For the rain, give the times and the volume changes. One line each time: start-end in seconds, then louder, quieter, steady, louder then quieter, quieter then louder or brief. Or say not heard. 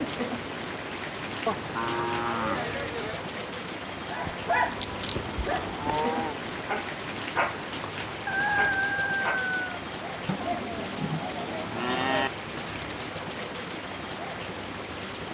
0.0-15.3 steady.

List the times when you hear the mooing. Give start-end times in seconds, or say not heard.
1.4-3.2, 5.2-6.4, 10.2-12.3.